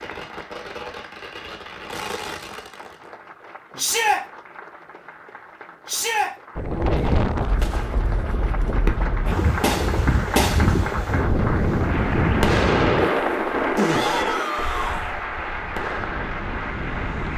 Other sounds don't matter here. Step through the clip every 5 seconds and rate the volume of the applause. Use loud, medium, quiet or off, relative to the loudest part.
quiet, medium, loud, loud.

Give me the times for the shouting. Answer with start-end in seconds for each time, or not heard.
3.8-4.2, 5.8-6.3, 13.8-15.2.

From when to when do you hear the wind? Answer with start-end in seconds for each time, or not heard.
6.5-17.3.